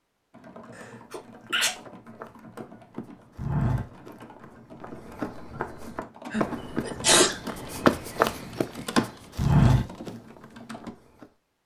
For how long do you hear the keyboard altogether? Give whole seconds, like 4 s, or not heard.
11 s.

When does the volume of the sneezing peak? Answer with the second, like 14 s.
7 s.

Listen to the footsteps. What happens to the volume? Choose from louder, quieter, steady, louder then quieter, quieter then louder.
quieter then louder.